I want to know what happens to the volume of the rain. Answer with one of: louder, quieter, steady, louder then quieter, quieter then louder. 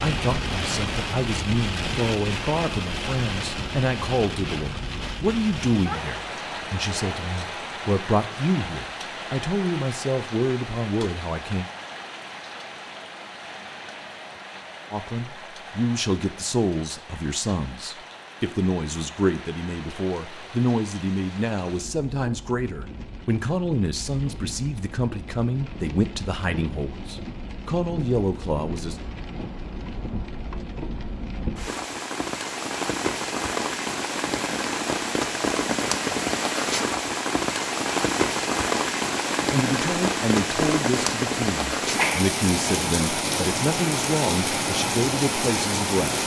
quieter then louder.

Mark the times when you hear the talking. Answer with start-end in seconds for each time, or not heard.
0.0-11.7, 14.9-28.9, 39.5-46.2.